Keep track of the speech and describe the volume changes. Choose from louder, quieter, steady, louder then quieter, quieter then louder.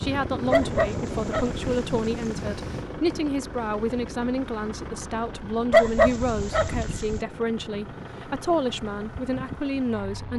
steady.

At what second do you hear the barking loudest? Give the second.
6 s.